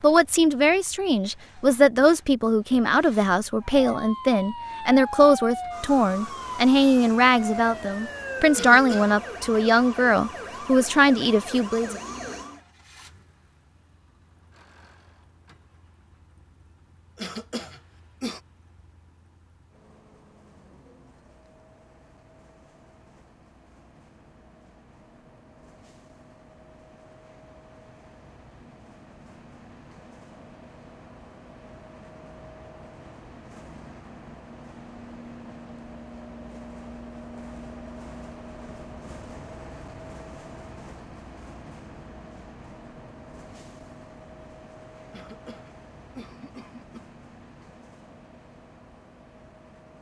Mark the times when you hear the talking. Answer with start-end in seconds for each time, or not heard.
0.0-12.0.